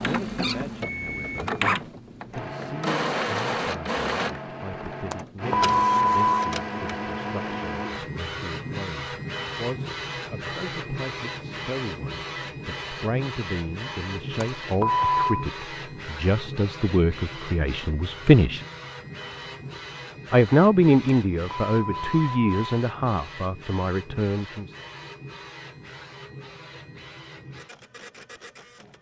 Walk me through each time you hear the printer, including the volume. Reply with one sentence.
The printer can be heard from 0.0 to 28.9 s, getting quieter.